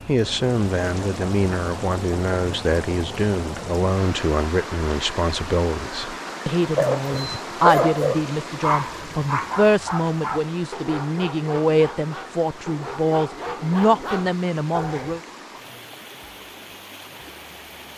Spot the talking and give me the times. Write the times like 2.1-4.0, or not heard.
0.1-15.2.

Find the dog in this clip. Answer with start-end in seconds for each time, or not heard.
6.8-15.2.